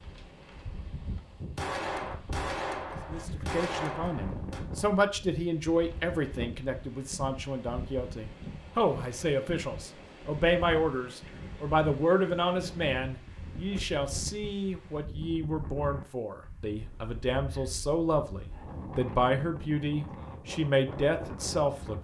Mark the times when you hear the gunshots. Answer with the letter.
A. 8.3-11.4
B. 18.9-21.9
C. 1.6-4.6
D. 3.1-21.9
C.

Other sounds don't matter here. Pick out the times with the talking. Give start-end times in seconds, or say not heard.
3.1-21.9.